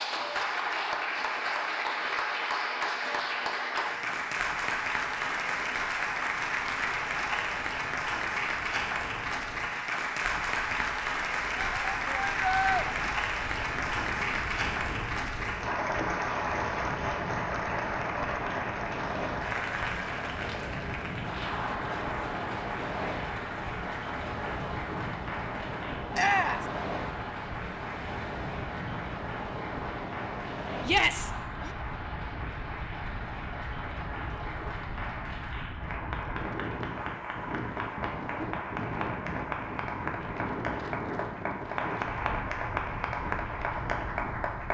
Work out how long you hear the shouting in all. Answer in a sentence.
You can hear the shouting for 3 seconds altogether.